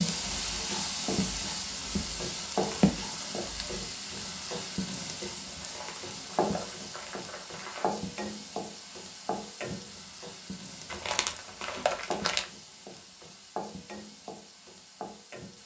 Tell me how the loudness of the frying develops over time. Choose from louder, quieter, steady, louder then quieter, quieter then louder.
quieter.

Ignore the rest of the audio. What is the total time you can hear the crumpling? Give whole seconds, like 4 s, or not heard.
5 s.